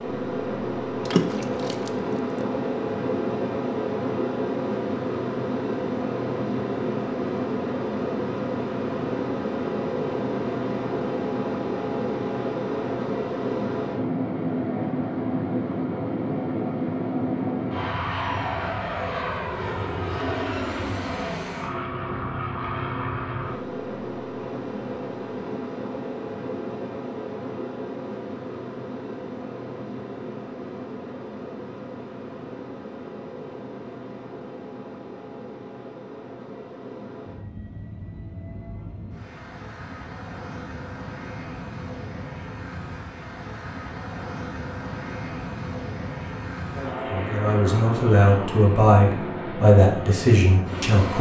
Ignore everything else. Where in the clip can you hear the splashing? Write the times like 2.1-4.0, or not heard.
1.1-2.4.